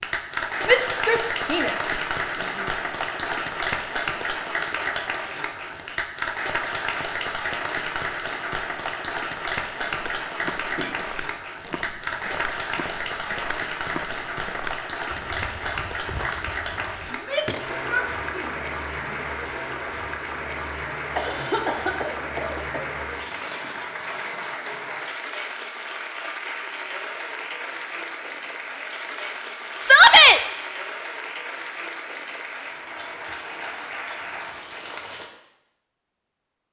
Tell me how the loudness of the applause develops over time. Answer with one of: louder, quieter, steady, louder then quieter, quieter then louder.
quieter.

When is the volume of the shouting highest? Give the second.
30 s.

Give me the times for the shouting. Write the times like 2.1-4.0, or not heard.
0.7-1.8, 17.1-19.2, 29.8-30.4.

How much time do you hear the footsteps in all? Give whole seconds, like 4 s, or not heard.
8 s.